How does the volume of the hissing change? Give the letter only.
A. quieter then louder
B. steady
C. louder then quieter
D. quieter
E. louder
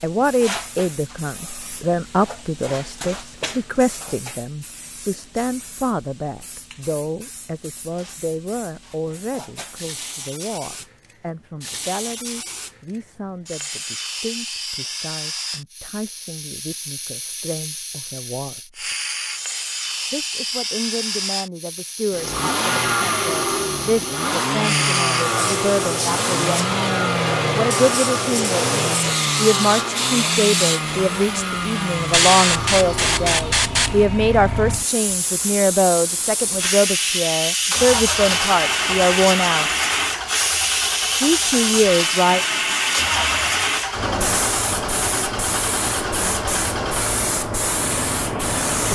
E.